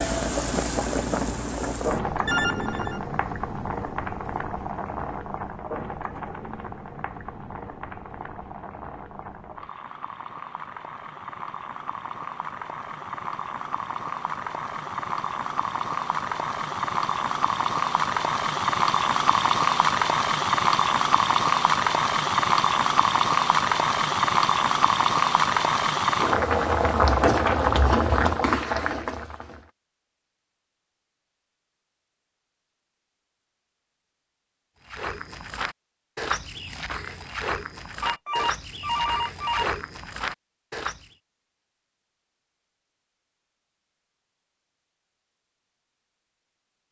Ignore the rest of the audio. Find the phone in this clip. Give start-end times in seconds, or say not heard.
2.2-3.0, 38.0-39.6.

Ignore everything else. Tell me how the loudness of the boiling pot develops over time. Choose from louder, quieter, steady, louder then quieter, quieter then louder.
quieter then louder.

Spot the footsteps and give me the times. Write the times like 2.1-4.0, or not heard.
34.9-41.1.